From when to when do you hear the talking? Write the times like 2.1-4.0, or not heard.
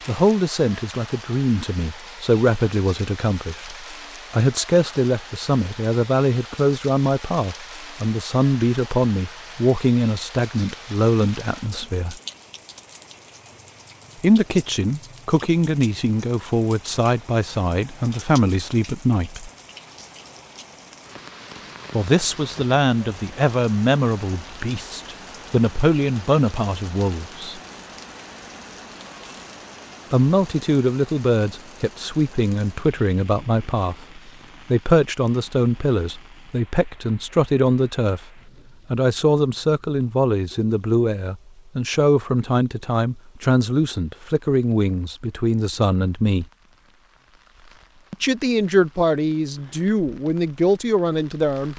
0.1-12.2, 14.2-19.5, 21.9-27.6, 30.1-38.3, 38.9-46.5, 48.1-51.7.